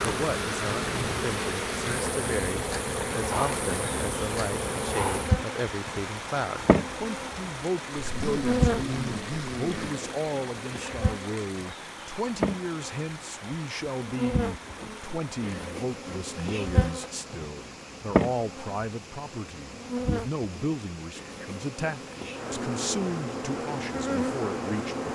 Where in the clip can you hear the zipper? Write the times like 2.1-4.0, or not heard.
8.0-9.9.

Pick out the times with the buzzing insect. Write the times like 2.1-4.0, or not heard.
0.0-25.1.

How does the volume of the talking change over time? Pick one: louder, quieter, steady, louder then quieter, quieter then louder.
steady.